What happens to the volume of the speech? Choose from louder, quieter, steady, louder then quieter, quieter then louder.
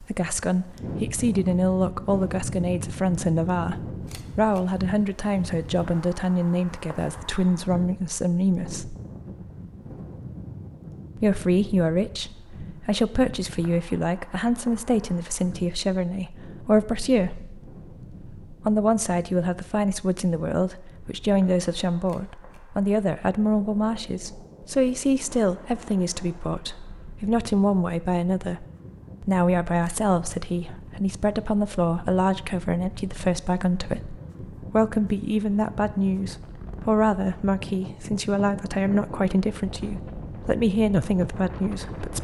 steady.